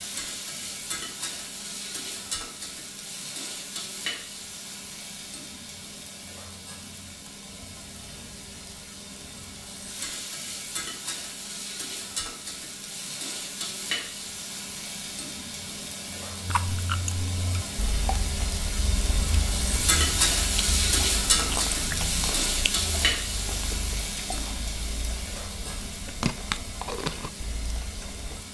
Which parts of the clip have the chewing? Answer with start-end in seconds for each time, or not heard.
16.4-28.4.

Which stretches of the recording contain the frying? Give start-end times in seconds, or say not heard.
0.0-28.4.